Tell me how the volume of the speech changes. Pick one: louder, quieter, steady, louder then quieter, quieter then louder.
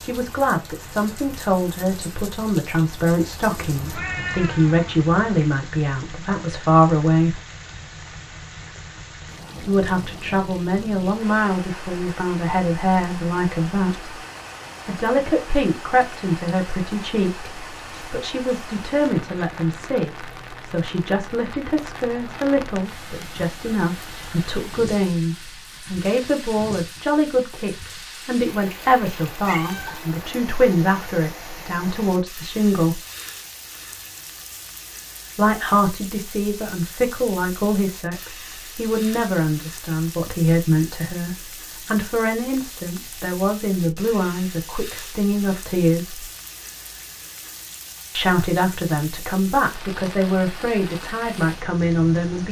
steady.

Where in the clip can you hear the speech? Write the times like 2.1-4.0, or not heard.
0.0-7.4, 9.7-14.1, 14.8-33.0, 35.4-46.3, 48.1-52.4.